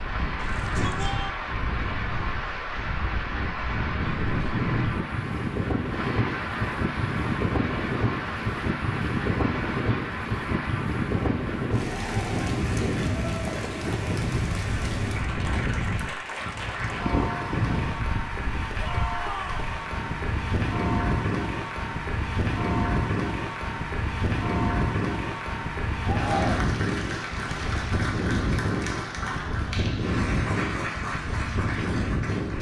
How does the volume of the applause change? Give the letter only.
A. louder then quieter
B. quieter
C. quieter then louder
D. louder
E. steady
E.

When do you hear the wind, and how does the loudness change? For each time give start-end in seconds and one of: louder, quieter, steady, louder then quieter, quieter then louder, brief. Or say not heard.
0.0-32.5 steady.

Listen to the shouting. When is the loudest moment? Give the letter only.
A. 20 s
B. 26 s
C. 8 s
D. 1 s
B.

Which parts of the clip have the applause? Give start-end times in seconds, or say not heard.
0.0-32.5.